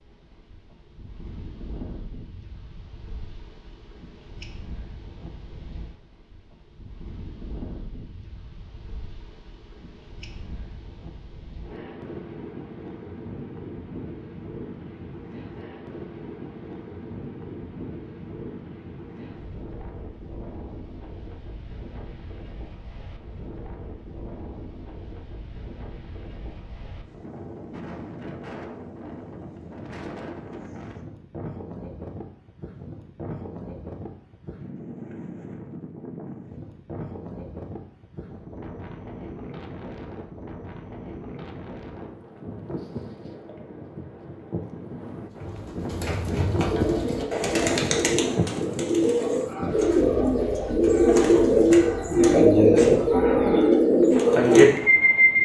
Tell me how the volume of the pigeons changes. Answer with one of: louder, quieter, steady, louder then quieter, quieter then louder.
louder.